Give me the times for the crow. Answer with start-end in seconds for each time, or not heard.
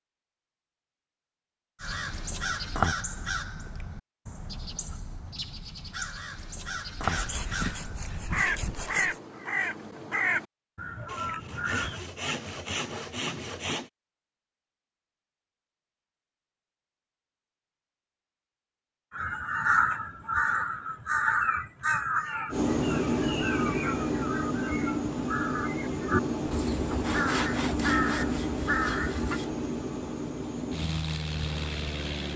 1.8-12.1, 19.1-29.4.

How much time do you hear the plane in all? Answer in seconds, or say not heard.
10 s.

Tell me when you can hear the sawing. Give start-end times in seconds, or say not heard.
7.0-9.2, 11.1-13.9, 27.0-29.5.